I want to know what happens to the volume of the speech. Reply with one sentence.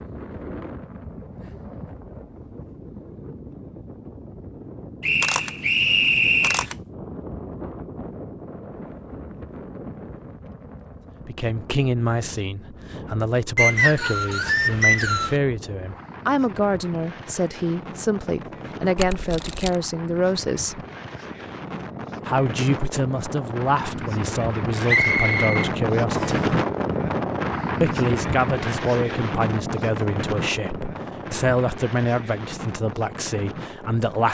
The loudness of the speech stays about the same.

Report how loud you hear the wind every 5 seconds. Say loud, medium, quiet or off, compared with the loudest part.
quiet, quiet, quiet, quiet, medium, loud, medium.